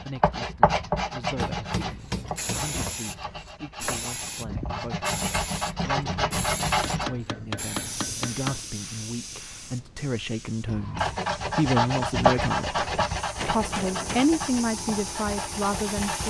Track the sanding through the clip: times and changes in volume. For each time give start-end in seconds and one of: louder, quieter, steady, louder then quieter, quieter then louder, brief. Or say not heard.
0.0-7.1 quieter then louder
10.7-16.2 quieter.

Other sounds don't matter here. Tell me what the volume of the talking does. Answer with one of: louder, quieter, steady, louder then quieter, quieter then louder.
louder.